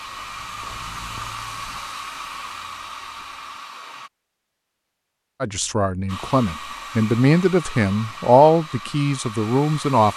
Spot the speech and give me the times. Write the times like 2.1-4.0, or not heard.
5.4-10.1.